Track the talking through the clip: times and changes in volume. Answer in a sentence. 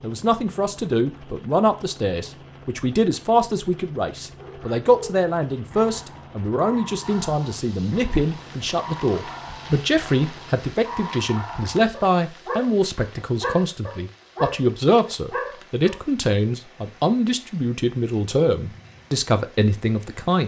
You can hear the talking from 0.0 to 20.4 s, at a steady volume.